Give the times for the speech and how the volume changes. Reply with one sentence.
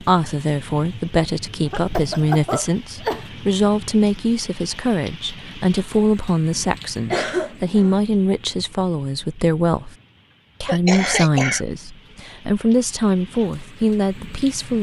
The speech can be heard from 0.0 to 9.9 s, at a steady volume; and from 10.6 to 14.7 s, getting quieter then louder.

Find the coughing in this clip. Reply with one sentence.
The coughing can be heard from 1.6 to 3.2 s, from 7.1 to 8.0 s and from 10.7 to 11.7 s.